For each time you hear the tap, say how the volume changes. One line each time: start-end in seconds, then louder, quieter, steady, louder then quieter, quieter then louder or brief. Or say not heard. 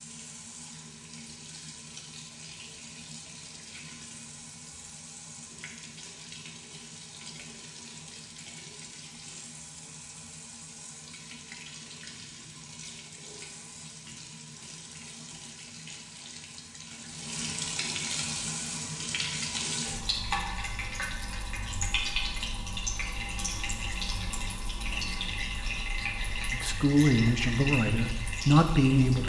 0.0-29.2 louder.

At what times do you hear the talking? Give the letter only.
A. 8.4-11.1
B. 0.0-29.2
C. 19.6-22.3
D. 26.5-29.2
D.